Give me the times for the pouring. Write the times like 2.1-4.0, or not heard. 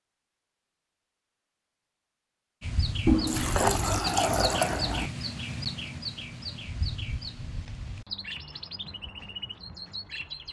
3.0-5.1.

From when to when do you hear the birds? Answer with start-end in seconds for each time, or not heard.
2.6-10.4.